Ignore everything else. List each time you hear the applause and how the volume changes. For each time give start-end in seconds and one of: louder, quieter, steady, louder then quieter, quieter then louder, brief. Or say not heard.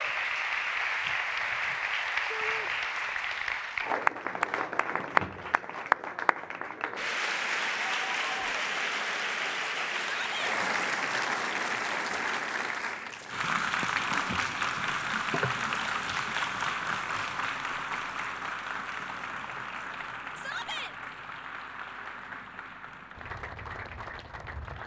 0.0-24.8 quieter.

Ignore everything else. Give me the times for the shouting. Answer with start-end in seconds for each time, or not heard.
2.3-2.7, 10.0-10.6, 20.4-20.9.